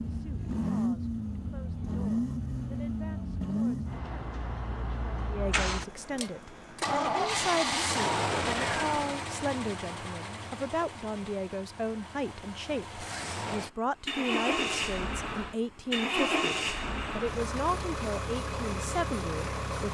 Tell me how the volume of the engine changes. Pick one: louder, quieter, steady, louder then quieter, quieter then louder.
steady.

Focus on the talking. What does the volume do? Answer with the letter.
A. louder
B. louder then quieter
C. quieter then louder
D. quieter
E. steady
A.